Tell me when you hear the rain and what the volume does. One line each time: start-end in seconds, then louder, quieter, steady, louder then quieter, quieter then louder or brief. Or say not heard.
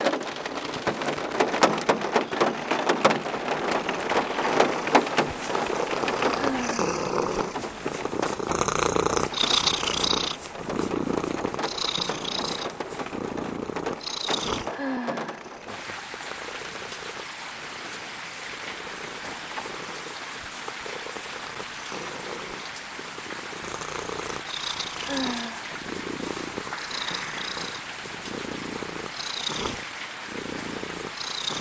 0.0-31.5 quieter.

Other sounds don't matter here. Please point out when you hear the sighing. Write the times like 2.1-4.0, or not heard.
6.3-7.0, 14.7-15.4, 24.9-25.8.